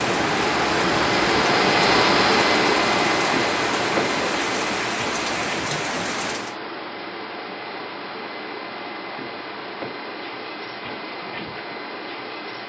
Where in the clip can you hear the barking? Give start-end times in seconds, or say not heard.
not heard.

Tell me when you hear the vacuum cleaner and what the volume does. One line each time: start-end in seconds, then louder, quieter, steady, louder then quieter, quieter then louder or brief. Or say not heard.
0.0-12.6 quieter.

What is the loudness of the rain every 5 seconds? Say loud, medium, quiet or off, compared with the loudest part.
loud, loud, off.